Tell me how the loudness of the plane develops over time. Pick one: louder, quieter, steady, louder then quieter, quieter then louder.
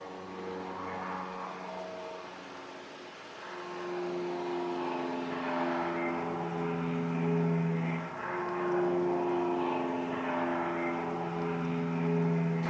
louder.